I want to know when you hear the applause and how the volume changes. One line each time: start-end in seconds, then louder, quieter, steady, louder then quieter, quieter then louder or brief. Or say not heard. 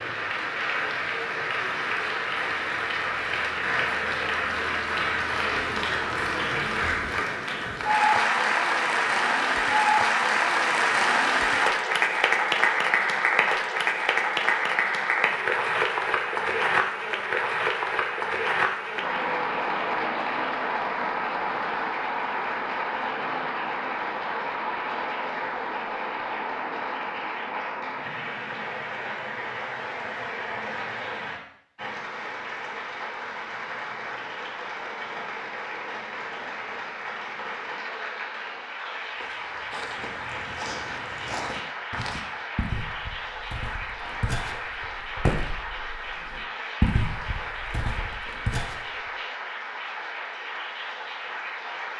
0.0-51.9 quieter.